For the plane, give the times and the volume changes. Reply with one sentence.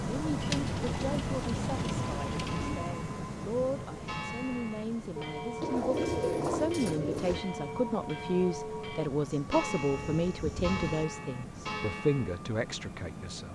The plane can be heard from 0.0 to 13.4 s, getting quieter.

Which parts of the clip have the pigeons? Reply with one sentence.
The pigeons can be heard from 0.4 to 2.9 s, from 5.6 to 7.5 s and from 9.6 to 11.1 s.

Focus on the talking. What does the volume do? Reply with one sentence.
The volume of the talking goes up.